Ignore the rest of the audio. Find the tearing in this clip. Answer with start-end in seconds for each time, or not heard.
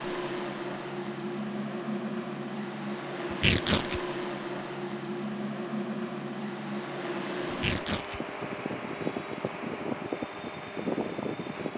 3.3-4.0, 7.5-8.2.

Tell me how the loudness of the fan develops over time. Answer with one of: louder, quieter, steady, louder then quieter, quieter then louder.
steady.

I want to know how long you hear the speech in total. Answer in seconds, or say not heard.
not heard.